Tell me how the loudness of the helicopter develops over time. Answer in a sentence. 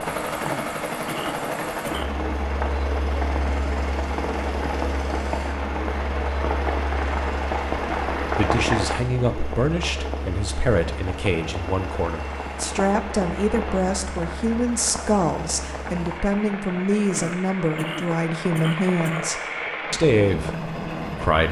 The volume of the helicopter goes down, then up.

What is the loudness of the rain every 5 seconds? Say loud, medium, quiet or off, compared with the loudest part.
loud, loud, medium, medium, off.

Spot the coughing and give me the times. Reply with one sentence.
You can hear the coughing from 0.4 to 2.2 s and from 17.1 to 19.3 s.